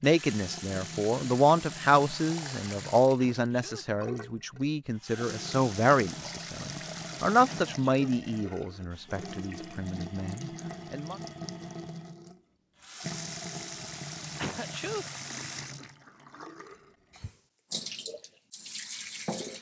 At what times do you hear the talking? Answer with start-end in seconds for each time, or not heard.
0.0-11.2.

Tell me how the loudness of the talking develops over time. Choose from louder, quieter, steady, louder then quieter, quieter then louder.
quieter.